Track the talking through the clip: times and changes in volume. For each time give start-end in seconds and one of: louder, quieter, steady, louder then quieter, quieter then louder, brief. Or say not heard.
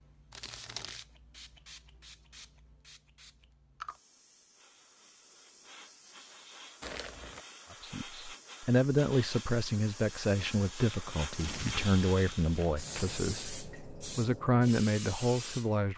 7.8-15.9 quieter then louder.